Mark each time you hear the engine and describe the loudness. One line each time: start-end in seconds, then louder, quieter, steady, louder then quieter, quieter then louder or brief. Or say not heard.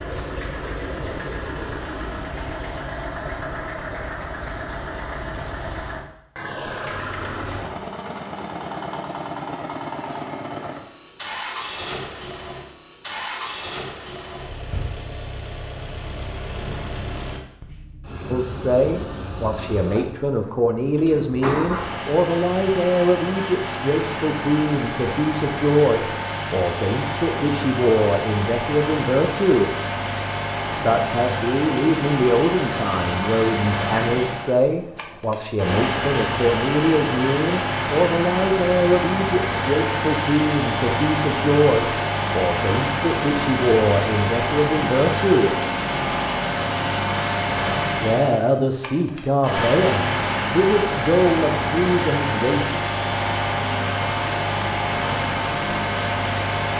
0.0-56.7 louder.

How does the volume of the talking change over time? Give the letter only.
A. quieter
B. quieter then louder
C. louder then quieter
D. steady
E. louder
D.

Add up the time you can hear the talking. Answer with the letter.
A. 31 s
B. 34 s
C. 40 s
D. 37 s
A.